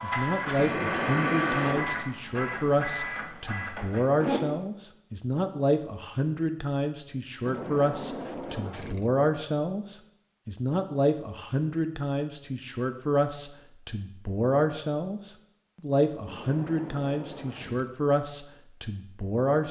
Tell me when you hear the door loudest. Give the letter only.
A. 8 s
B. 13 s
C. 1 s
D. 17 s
C.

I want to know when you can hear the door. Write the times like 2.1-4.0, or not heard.
0.6-2.0, 7.5-9.2, 16.2-17.9.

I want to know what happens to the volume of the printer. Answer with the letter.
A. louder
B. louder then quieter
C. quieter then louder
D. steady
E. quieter
E.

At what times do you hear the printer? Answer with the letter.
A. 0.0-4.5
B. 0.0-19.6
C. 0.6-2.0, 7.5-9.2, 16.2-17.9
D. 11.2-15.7
A.